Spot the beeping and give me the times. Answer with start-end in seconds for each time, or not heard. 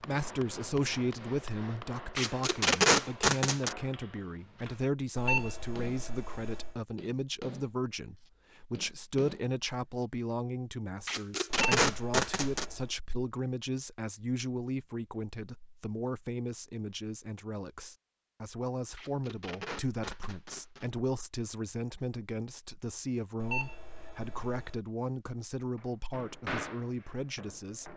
5.2-6.8, 11.8-13.0, 23.4-24.8.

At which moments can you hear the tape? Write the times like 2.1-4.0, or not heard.
2.1-3.8, 11.1-12.7, 18.9-20.9.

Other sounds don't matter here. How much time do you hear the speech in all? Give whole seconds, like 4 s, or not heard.
28 s.